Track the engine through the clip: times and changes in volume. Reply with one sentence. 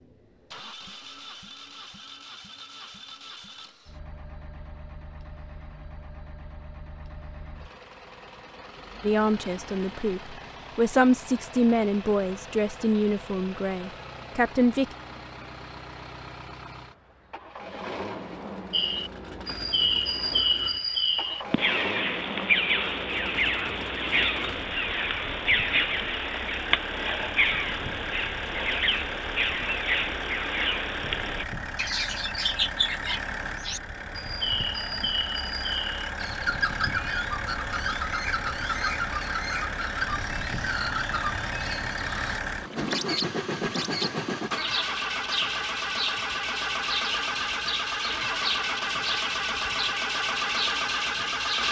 The engine can be heard from 0.0 to 51.6 s, getting louder.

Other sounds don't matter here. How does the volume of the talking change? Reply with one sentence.
The volume of the talking goes up, then down.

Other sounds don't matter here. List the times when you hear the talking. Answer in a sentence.
You can hear the talking from 9.0 to 14.8 s.